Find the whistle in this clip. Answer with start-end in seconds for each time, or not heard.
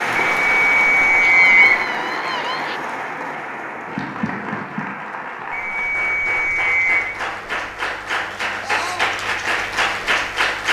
0.1-1.8, 5.5-7.0.